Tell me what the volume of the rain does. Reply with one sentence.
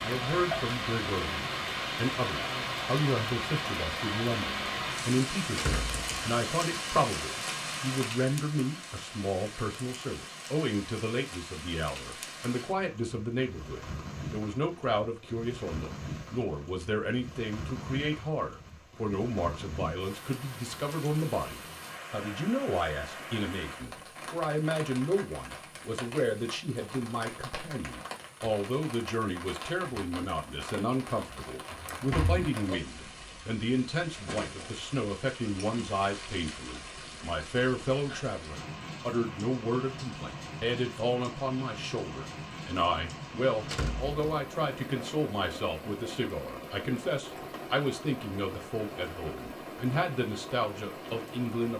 The loudness of the rain goes down.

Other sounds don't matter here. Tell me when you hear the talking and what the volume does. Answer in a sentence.
You can hear the talking from 0.0 to 51.7 s, at a steady volume.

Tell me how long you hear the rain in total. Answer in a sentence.
You can hear the rain for 52 seconds altogether.